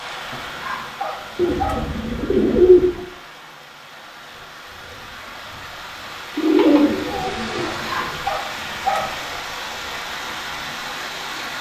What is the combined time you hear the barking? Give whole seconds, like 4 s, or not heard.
3 s.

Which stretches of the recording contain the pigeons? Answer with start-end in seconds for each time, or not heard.
1.4-3.0, 6.3-8.1.